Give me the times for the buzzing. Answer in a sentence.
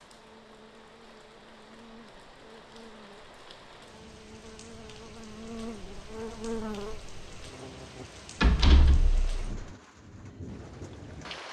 The buzzing can be heard from 0.0 to 8.1 s.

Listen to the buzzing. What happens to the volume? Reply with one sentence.
The loudness of the buzzing goes up.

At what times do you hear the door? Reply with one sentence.
The door can be heard from 8.4 to 9.5 s.